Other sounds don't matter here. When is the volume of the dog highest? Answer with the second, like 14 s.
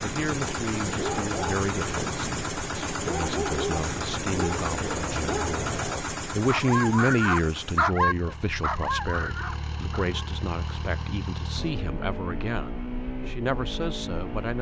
8 s.